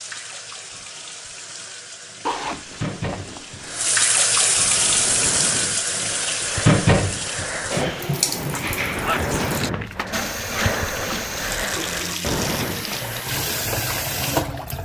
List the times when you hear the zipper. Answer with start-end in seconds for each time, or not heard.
2.2-3.9, 8.5-10.0.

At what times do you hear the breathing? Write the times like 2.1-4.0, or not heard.
4.7-13.2.